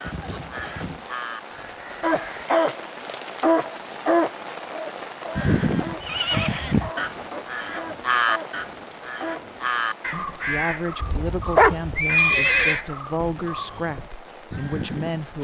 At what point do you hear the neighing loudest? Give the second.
12 s.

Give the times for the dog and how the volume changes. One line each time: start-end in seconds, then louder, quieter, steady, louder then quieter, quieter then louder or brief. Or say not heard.
2.0-9.6 quieter.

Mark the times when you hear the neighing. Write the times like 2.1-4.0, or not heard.
0.0-1.1, 5.3-6.9, 11.0-12.8.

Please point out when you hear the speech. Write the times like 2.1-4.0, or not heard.
10.1-15.3.